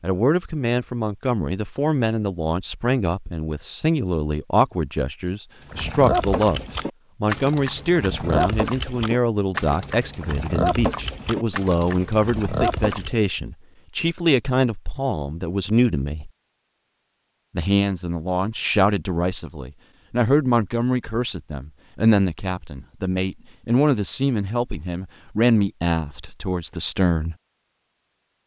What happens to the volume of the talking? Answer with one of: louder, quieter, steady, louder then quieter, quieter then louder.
steady.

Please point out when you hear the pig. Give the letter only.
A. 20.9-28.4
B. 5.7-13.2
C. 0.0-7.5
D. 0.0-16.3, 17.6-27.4
B.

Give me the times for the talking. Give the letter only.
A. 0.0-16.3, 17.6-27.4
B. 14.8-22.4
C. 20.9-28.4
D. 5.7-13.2
A.